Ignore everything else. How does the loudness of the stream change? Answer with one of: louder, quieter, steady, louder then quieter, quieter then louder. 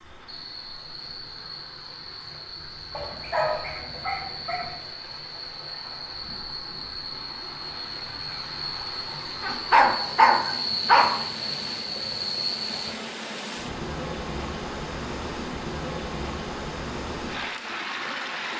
louder.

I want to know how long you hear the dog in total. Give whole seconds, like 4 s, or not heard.
4 s.